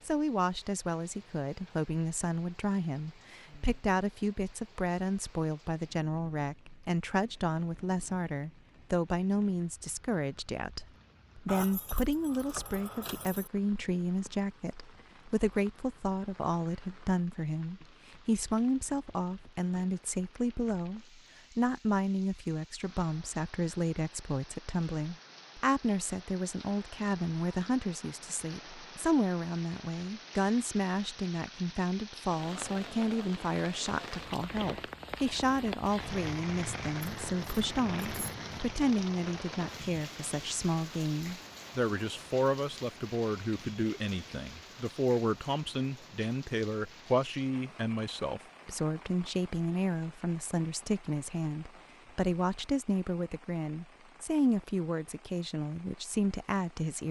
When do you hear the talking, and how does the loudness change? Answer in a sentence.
You can hear the talking from 0.1 to 57.0 s, at a steady volume.